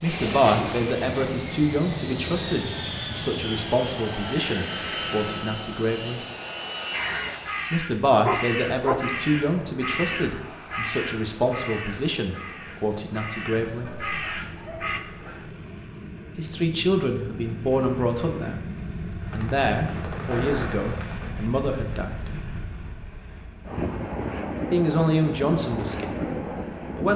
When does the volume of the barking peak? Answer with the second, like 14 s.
9 s.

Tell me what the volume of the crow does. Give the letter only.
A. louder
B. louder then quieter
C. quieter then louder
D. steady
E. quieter
C.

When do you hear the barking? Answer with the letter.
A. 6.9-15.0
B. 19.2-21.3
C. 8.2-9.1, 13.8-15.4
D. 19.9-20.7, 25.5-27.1
C.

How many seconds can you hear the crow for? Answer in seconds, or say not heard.
8 s.